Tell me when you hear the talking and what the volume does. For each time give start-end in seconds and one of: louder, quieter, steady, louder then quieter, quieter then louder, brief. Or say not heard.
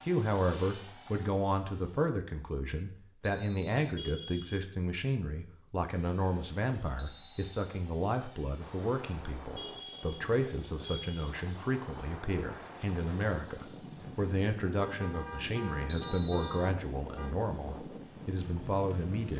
0.0-19.3 steady.